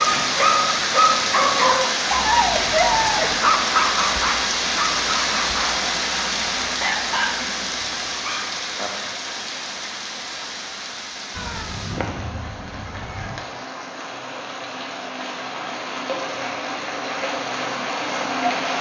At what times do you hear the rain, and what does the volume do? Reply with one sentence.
The rain can be heard from 0.0 to 18.7 s, getting quieter then louder.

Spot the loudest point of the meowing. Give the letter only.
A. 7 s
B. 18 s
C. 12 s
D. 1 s
C.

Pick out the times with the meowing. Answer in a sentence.
The meowing can be heard from 11.3 to 13.3 s.